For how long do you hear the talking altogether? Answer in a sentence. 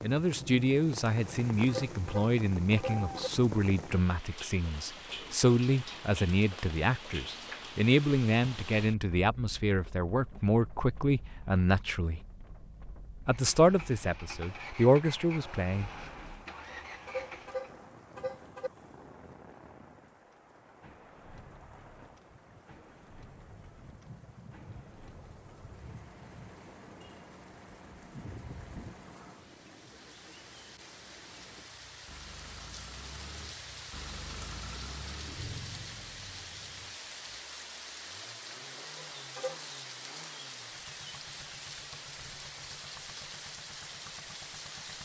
You can hear the talking for 15 seconds altogether.